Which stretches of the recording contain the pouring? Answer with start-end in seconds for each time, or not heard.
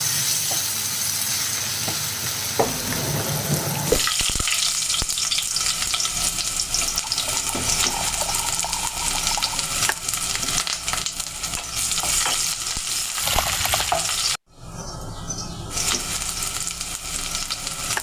2.6-4.2, 7.0-9.7, 13.2-14.1.